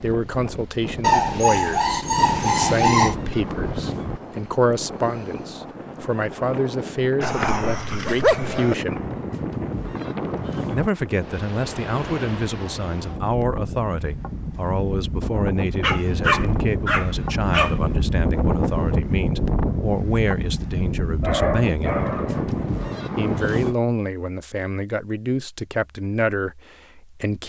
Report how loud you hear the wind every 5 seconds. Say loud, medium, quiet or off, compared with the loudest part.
medium, medium, medium, loud, loud, off.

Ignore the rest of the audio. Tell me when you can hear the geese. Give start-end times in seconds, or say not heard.
2.1-4.2, 8.8-10.9, 16.0-18.1, 21.8-23.8.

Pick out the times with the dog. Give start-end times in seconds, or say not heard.
1.0-3.1, 7.2-8.8, 15.8-17.8, 21.2-23.1.